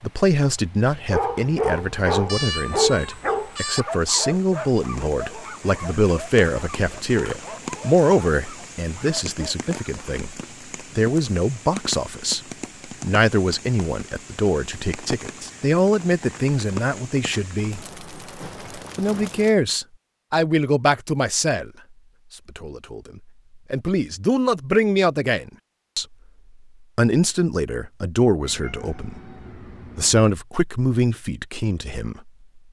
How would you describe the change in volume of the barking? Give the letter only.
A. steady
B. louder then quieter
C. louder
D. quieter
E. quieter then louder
D.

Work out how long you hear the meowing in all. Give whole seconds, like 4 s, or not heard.
3 s.